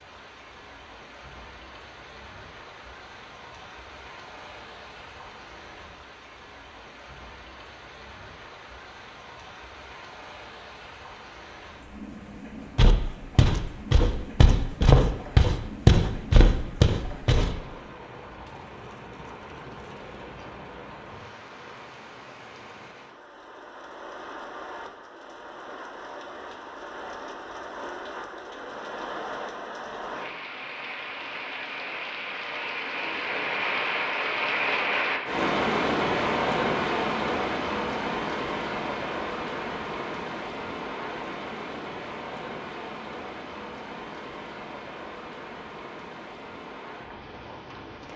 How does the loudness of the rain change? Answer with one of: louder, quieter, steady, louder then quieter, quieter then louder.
louder then quieter.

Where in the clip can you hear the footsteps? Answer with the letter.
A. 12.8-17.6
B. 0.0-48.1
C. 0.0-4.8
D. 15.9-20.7
A.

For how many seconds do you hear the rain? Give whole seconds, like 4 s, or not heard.
48 s.